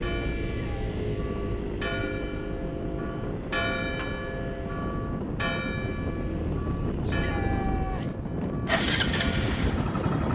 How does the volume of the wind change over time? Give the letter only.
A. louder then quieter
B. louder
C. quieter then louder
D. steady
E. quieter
B.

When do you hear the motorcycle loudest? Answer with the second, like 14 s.
9 s.